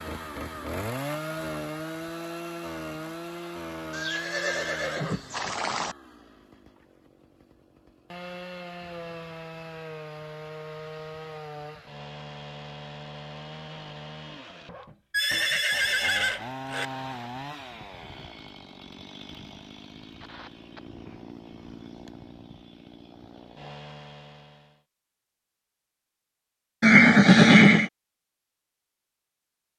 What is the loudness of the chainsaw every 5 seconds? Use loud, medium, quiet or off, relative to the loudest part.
loud, medium, medium, medium, medium, off.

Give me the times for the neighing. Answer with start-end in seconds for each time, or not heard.
3.9-6.0, 15.1-16.9, 26.8-27.9.